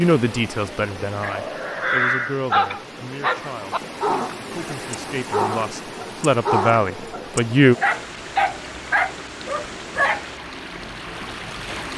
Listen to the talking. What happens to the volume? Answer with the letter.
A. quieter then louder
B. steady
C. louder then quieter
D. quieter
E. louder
A.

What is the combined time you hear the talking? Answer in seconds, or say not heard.
8 s.